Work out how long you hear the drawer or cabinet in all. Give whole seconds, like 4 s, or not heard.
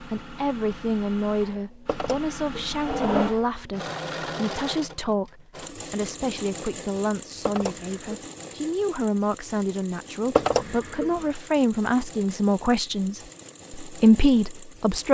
3 s.